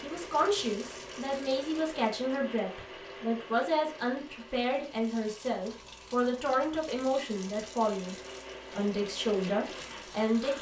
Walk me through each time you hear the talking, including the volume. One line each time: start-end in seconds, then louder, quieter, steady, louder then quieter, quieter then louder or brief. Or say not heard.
0.0-10.5 steady.